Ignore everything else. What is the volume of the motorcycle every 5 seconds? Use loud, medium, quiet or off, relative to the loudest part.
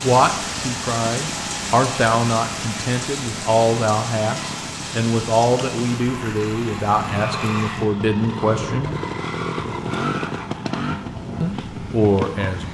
medium, loud, loud.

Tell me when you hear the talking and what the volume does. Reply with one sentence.
The talking can be heard from 0.0 to 8.9 s, at a steady volume; and briefly from 11.4 to 12.6 s.